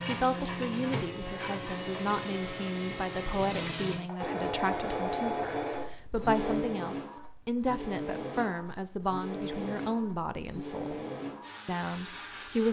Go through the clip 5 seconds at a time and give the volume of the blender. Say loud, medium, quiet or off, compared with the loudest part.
loud, loud, medium.